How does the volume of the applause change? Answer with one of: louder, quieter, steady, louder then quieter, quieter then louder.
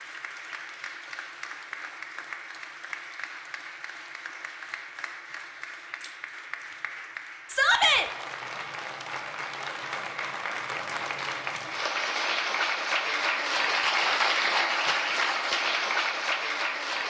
louder.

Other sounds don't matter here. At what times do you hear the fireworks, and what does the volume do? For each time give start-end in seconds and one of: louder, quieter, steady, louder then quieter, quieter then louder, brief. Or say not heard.
not heard.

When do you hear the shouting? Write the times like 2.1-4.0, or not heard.
7.5-8.1.